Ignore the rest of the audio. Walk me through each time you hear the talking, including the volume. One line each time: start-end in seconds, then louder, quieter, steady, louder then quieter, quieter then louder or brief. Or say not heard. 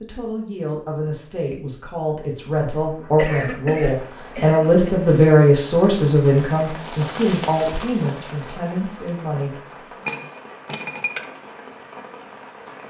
0.0-10.1 louder then quieter.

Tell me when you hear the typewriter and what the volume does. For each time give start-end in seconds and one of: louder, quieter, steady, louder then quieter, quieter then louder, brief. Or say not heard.
not heard.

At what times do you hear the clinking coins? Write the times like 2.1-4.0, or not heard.
9.7-11.2.